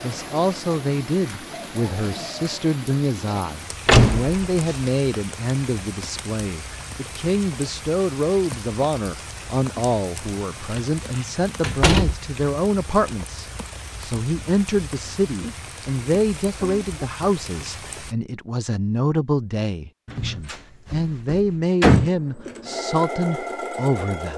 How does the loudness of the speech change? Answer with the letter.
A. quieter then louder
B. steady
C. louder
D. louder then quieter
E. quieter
B.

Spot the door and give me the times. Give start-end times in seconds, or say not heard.
3.9-4.9, 10.2-10.8, 11.6-12.2, 20.1-22.1.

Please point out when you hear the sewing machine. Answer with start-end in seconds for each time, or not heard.
21.9-24.3.